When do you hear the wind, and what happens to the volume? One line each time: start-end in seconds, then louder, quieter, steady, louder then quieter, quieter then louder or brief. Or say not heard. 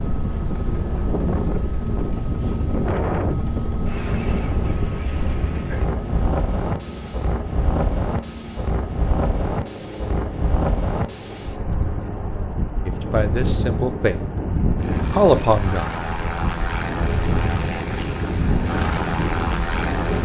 0.0-20.2 steady.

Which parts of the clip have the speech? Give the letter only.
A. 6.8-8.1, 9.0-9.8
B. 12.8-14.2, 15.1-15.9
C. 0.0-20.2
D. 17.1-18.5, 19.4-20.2
B.